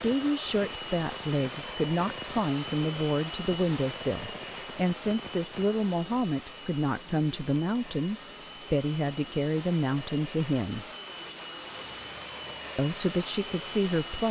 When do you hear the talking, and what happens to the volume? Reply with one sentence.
You can hear the talking from 0.0 to 10.8 s, at a steady volume; and briefly from 12.8 to 14.2 s.